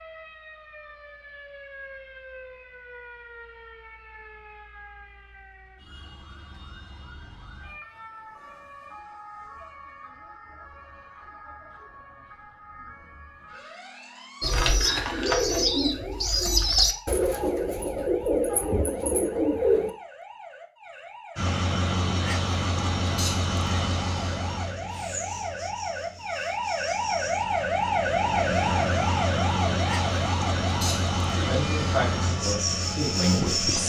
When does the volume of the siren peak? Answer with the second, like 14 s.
28 s.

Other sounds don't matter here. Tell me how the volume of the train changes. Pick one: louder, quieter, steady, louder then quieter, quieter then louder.
quieter then louder.